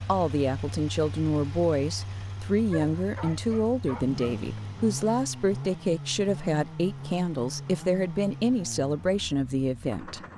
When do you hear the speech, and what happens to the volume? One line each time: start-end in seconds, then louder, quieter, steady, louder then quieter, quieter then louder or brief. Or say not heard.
0.1-10.2 steady.